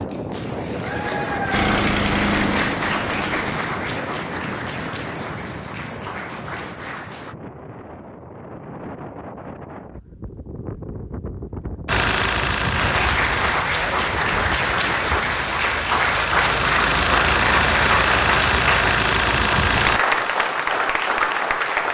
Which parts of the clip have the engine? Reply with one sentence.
The engine can be heard from 1.5 to 3.6 s and from 11.8 to 20.0 s.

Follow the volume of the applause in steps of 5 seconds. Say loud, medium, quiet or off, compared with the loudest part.
medium, quiet, loud, loud, loud.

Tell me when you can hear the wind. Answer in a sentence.
The wind can be heard from 0.0 to 15.4 s.